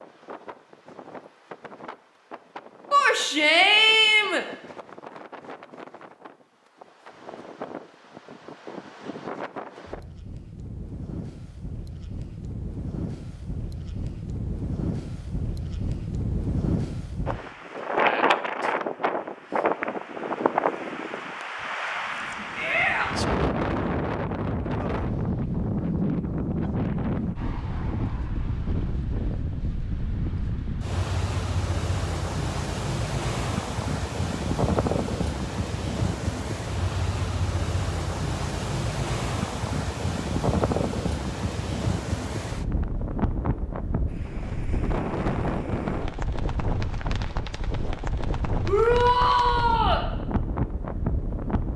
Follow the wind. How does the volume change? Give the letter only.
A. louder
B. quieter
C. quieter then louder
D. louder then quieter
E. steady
A.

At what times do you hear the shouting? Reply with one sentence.
You can hear the shouting from 2.9 to 4.5 s, from 22.6 to 23.1 s and from 48.6 to 50.0 s.